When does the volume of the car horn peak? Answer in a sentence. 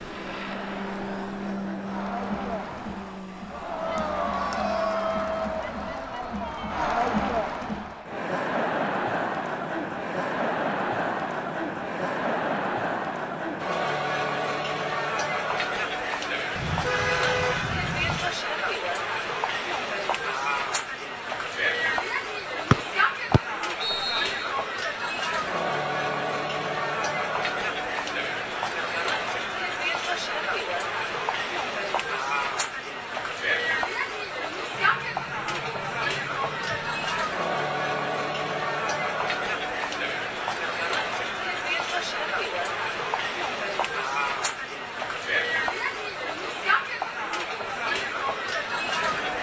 The volume of the car horn peaks at 17 seconds.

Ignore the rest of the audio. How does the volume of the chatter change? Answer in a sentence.
The loudness of the chatter stays about the same.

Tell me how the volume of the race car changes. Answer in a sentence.
The volume of the race car goes down.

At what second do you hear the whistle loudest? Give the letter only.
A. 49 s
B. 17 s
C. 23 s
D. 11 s
C.